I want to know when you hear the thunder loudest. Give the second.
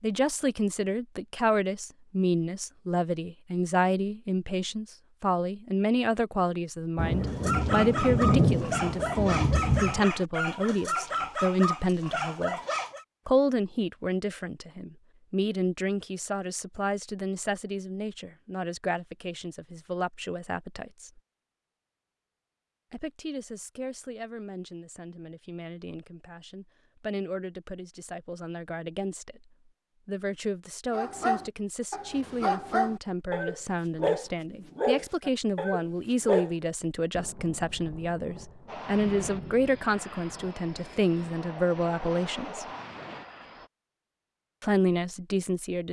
8 s.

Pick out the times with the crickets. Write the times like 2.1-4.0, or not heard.
not heard.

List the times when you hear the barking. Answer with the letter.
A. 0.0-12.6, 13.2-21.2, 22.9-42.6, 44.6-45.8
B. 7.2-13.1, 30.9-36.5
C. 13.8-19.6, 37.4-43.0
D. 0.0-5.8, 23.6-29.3
B.